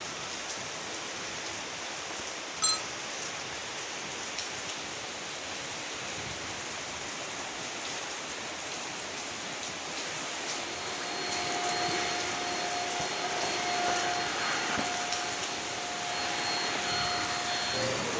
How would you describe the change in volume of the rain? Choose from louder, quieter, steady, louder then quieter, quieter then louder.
steady.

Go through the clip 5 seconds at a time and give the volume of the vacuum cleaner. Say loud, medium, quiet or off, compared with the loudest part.
off, off, loud, loud.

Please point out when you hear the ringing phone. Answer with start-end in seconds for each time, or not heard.
2.1-2.8.